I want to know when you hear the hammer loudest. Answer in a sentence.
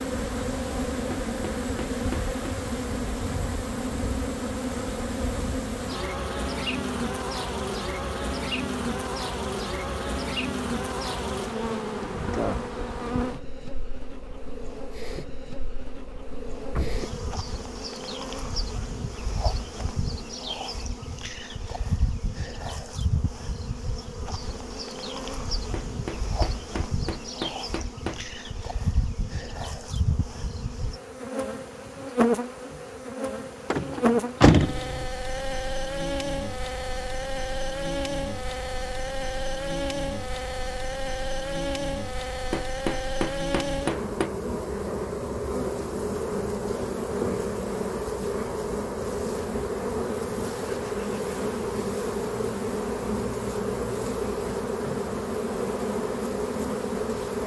The loudest moment of the hammer is at 44 seconds.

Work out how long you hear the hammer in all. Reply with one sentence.
The hammer can be heard for 6 seconds in total.